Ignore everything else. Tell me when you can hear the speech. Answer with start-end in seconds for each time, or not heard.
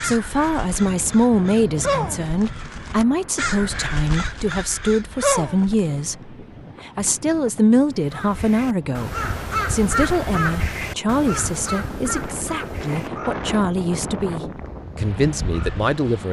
0.0-16.2.